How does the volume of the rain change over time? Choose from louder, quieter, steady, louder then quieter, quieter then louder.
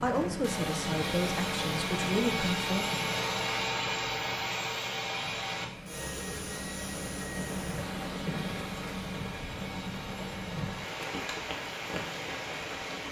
quieter then louder.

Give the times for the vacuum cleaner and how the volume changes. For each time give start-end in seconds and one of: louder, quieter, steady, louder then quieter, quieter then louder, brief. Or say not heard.
0.2-13.0 quieter.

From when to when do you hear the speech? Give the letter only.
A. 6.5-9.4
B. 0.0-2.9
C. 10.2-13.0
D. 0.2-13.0
B.